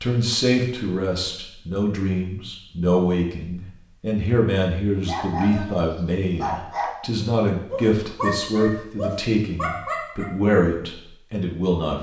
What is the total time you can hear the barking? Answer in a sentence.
You can hear the barking for 5 seconds altogether.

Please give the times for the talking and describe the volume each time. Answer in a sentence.
The talking can be heard from 0.0 to 11.9 s, at a steady volume.